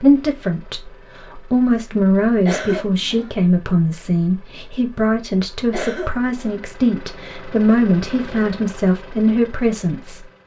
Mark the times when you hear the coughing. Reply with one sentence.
You can hear the coughing from 2.5 to 3.3 s and from 5.7 to 6.6 s.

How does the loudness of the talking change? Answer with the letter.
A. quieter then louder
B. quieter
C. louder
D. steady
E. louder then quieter
D.